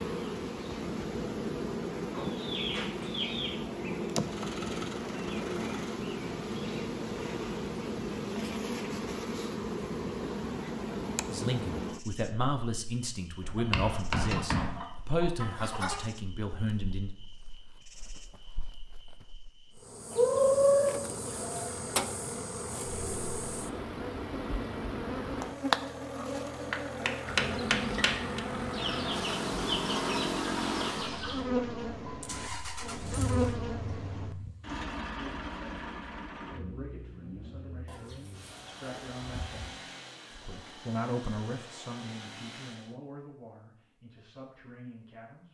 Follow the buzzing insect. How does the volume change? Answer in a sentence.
The loudness of the buzzing insect goes down, then up.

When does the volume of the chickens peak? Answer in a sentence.
The volume of the chickens peaks at 21 seconds.